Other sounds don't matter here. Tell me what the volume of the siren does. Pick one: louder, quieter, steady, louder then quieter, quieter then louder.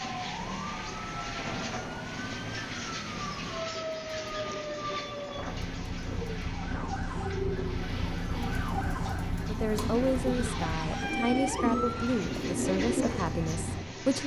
steady.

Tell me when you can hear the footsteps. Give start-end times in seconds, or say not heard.
not heard.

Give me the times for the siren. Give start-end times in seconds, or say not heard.
0.0-12.2.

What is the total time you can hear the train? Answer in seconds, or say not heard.
14 s.